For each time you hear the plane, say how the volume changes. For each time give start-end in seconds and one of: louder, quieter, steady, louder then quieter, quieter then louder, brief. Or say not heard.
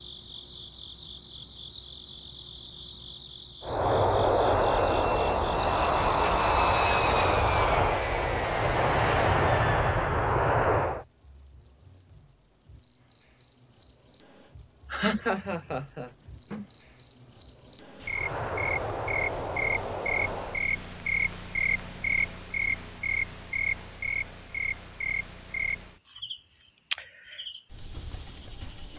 3.6-11.1 steady
18.1-20.7 brief.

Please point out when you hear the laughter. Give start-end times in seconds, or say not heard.
14.9-16.6.